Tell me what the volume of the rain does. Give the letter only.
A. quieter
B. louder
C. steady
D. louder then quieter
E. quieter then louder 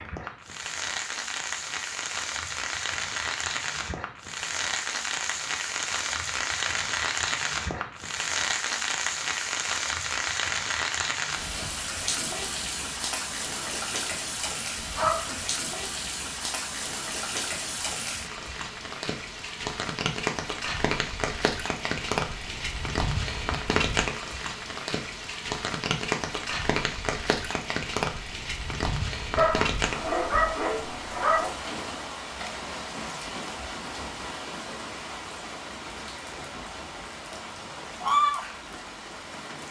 C.